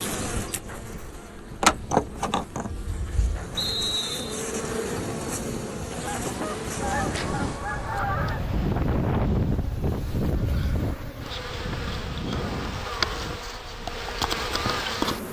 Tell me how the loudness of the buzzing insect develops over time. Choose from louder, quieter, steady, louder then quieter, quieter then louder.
quieter then louder.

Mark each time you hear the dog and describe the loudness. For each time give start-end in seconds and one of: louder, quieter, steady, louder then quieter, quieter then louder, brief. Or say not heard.
not heard.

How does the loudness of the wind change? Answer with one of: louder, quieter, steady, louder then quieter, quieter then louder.
louder then quieter.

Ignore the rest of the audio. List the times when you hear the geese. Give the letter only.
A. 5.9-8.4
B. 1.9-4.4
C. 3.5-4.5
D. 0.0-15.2
A.